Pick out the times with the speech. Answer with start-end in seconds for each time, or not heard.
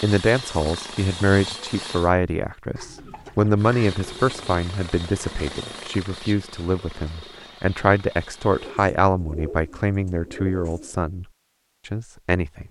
0.0-11.2, 11.8-12.6.